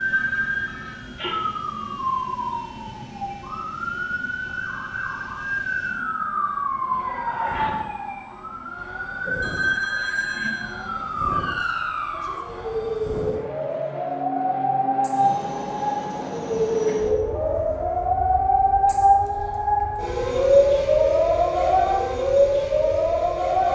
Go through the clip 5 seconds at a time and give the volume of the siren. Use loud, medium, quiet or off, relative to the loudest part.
medium, medium, medium, loud, loud.